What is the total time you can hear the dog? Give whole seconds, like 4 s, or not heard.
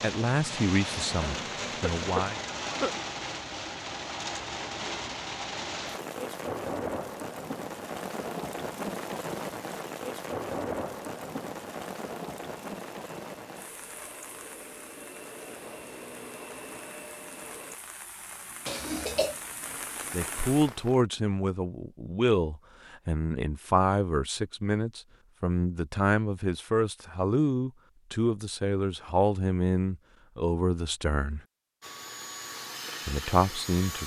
not heard.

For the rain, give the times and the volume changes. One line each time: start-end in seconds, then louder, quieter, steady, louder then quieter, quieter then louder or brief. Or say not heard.
0.0-21.1 quieter.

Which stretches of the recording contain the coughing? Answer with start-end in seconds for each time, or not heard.
1.1-3.0, 18.6-19.4.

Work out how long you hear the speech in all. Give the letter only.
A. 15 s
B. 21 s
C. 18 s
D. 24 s
A.